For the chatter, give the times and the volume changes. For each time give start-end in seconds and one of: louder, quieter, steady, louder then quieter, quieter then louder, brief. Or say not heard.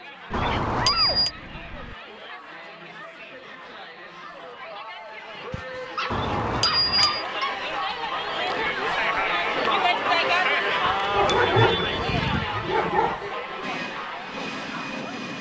0.0-15.3 louder then quieter.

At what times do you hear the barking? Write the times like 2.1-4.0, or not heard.
0.3-1.9, 5.5-7.6, 11.1-13.3.